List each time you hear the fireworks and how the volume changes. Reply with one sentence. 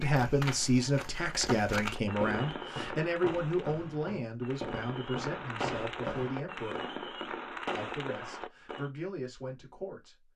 You can hear the fireworks from 1.9 to 8.9 s, getting quieter then louder.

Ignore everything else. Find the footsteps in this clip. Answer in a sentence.
The footsteps can be heard from 0.0 to 6.3 s.